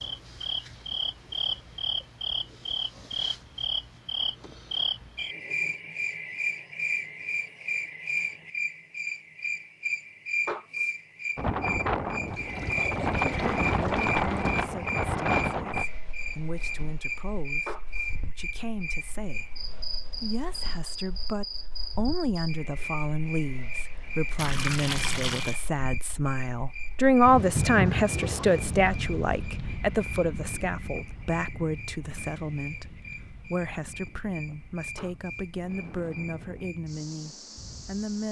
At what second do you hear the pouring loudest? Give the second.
25 s.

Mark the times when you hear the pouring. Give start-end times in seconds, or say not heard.
12.2-14.6, 24.4-25.6.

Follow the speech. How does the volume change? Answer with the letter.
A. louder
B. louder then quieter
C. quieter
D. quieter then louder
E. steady
B.